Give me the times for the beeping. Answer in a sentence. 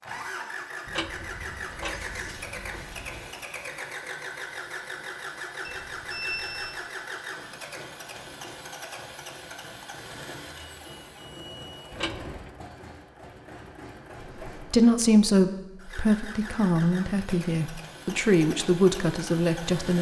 You can hear the beeping from 5.6 to 6.8 s and from 10.6 to 11.9 s.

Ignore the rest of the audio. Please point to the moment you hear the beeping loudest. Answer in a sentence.
The loudest moment of the beeping is at 6 seconds.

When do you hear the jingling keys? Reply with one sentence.
The jingling keys can be heard from 0.8 to 3.3 s and from 11.9 to 12.5 s.